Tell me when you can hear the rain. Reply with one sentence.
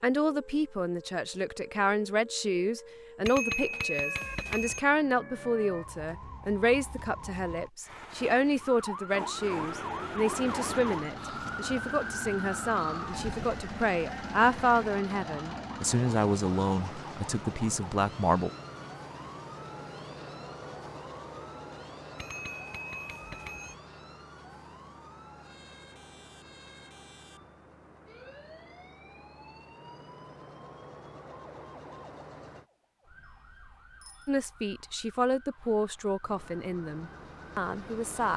You can't hear the rain here.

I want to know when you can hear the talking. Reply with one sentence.
You can hear the talking from 0.0 to 18.5 s and from 34.2 to 38.3 s.